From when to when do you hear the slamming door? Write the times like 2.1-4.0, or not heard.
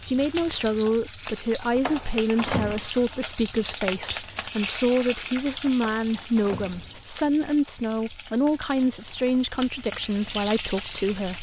1.8-2.8, 5.8-7.0.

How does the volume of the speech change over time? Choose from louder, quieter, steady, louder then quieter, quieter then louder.
steady.